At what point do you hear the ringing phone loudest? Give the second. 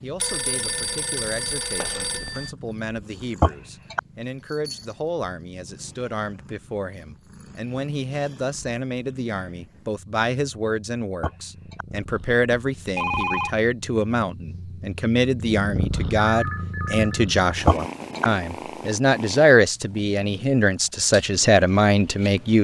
13 s.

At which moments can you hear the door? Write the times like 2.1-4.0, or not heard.
not heard.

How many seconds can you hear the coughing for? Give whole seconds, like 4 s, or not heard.
2 s.